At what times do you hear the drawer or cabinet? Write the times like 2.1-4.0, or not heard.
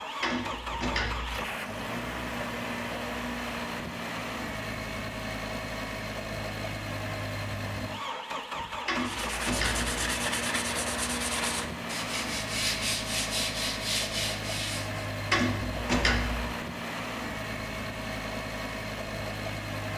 0.2-1.4, 8.8-9.9, 15.3-16.6.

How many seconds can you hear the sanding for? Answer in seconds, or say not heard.
6 s.